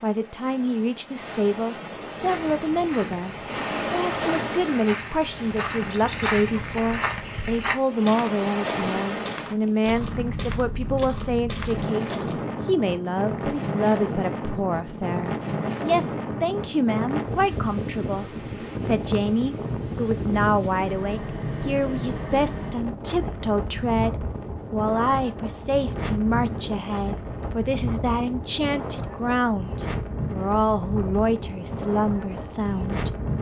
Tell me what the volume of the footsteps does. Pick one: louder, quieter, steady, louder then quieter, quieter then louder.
louder then quieter.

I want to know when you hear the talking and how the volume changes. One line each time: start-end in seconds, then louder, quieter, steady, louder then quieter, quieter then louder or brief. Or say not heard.
0.0-33.1 steady.